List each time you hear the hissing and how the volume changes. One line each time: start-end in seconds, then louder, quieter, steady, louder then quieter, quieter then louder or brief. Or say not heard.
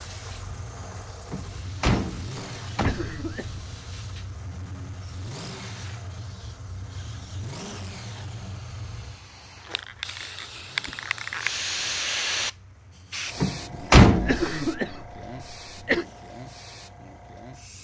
0.0-17.7 louder then quieter.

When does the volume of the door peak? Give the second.
14 s.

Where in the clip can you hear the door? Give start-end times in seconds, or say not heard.
1.3-3.6, 13.4-14.5.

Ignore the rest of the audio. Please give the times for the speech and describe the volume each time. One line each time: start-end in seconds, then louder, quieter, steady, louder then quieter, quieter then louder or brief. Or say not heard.
not heard.